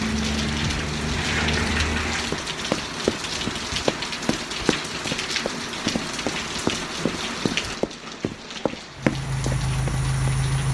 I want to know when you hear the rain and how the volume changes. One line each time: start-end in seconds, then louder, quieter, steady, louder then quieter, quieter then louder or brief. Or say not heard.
0.0-10.6 quieter.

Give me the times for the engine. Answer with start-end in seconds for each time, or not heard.
0.0-2.4, 8.9-10.6.